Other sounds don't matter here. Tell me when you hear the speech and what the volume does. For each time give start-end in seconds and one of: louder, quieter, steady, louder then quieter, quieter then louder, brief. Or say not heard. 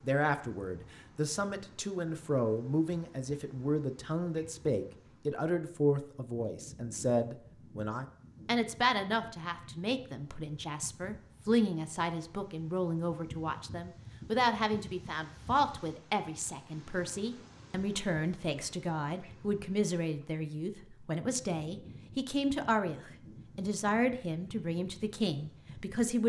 0.0-26.2 steady.